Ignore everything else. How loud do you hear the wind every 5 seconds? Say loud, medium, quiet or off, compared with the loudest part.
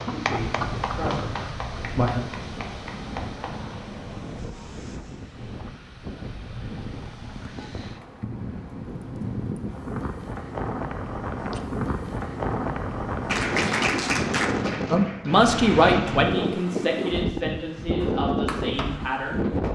medium, medium, loud, loud.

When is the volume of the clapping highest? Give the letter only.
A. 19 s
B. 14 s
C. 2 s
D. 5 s
B.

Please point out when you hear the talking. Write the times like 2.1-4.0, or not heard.
0.0-2.2, 14.9-19.5.